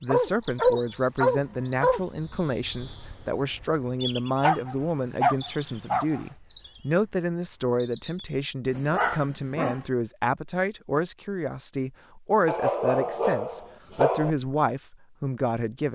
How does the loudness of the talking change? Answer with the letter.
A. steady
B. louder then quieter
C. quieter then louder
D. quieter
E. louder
A.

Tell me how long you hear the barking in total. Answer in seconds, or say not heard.
7 s.